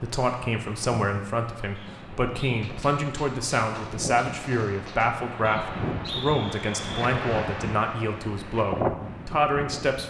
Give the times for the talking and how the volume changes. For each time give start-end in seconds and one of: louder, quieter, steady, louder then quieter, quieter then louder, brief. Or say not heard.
0.0-10.0 steady.